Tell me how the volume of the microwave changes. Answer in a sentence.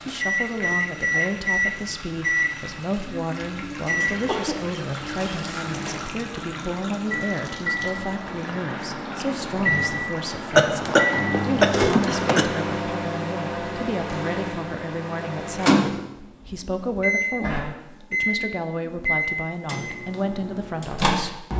The loudness of the microwave goes down, then up.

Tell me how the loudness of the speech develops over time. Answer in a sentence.
The volume of the speech stays about the same.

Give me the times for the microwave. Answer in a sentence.
You can hear the microwave from 0.0 to 21.5 s.